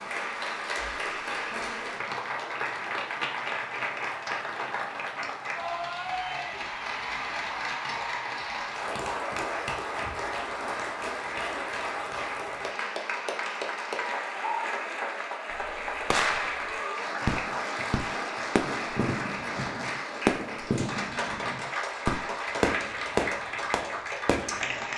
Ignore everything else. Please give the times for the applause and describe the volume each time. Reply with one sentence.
The applause can be heard from 0.0 to 24.9 s, at a steady volume.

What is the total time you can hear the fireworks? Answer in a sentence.
The fireworks can be heard for 9 seconds in total.